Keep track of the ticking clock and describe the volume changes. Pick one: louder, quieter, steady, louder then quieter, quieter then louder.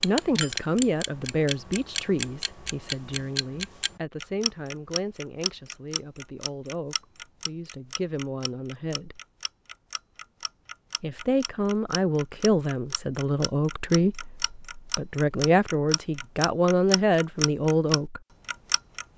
quieter then louder.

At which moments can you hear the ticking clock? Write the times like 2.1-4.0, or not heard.
0.0-19.1.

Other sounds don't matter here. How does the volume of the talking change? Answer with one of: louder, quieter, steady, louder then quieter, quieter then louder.
quieter then louder.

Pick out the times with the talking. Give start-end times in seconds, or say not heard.
0.0-9.2, 11.0-18.2.